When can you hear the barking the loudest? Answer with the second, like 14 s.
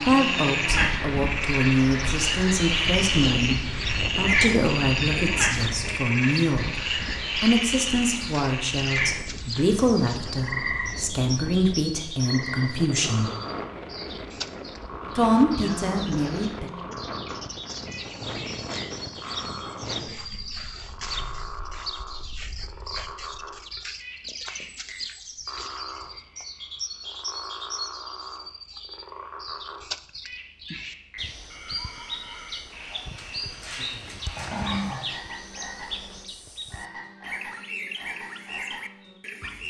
35 s.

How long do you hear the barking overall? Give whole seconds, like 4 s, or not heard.
2 s.